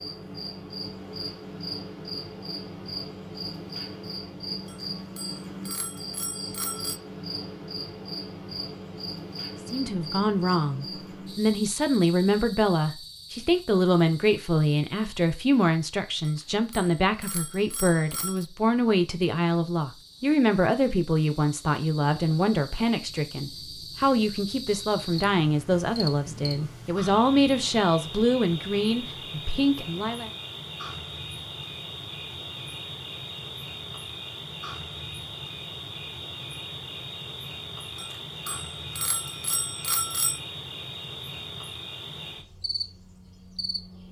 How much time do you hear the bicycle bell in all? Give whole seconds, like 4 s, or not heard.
7 s.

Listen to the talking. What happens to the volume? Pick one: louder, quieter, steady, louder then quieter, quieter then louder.
steady.